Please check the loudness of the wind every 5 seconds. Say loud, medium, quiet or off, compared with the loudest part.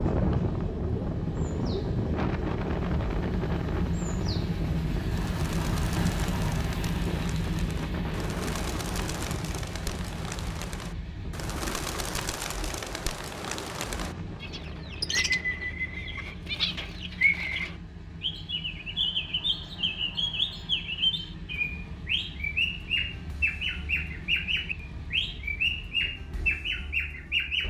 loud, medium, quiet, quiet, off, off.